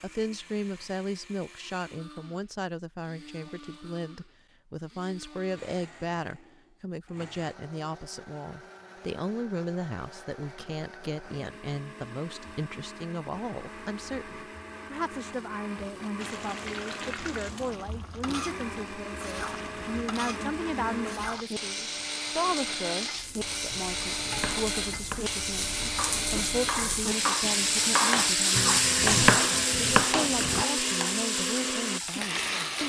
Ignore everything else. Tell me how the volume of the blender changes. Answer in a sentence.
The volume of the blender goes up.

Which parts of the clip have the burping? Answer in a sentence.
The burping can't be heard in this clip.